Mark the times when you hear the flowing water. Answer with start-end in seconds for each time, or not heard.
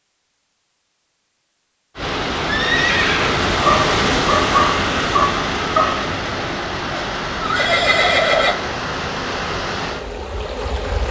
1.9-11.0.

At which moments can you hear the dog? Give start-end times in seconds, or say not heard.
3.6-6.0.